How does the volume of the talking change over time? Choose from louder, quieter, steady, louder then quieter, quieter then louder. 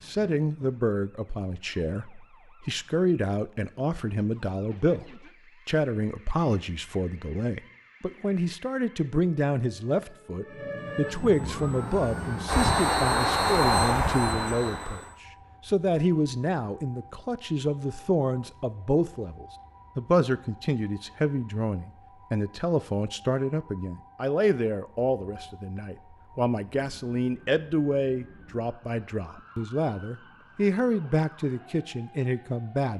steady.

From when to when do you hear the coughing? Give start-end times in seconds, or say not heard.
not heard.